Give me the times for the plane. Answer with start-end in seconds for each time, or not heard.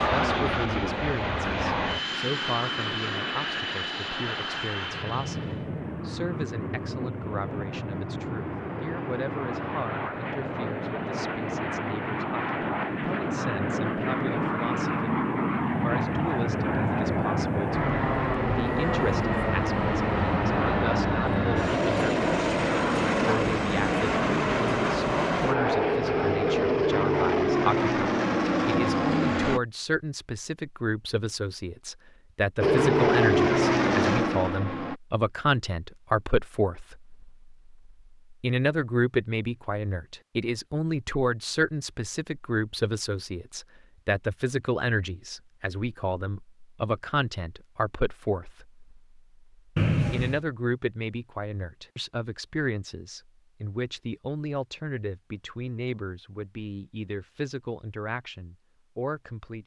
0.0-29.6, 32.6-35.0.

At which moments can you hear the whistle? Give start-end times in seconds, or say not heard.
49.8-50.4.